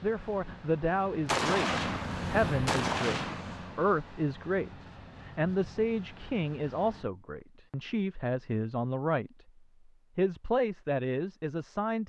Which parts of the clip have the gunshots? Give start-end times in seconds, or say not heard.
1.2-3.8.